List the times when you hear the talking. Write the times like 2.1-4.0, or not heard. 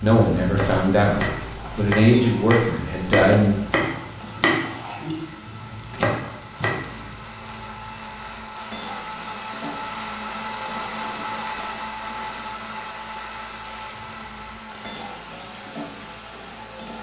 0.0-3.5.